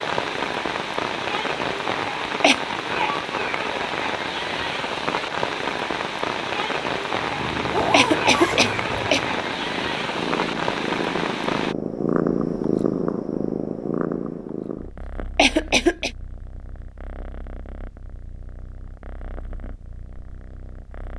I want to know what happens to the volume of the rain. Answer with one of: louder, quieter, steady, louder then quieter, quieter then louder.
steady.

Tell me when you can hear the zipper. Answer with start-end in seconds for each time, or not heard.
7.7-9.1.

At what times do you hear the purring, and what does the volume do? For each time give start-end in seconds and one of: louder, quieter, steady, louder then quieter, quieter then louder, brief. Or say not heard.
7.2-21.1 louder then quieter.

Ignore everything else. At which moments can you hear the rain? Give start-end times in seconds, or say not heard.
0.0-11.8.